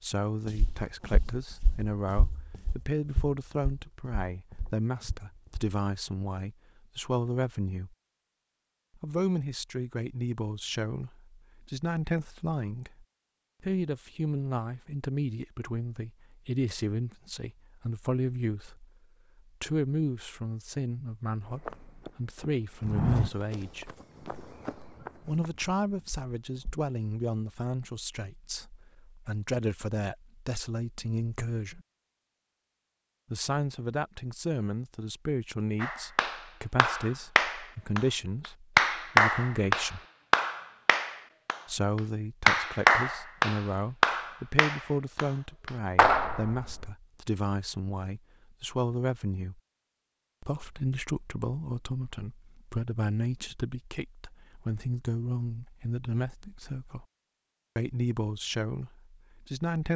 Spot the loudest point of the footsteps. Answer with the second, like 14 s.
23 s.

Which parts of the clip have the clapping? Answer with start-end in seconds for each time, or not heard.
35.8-38.0, 38.8-46.9.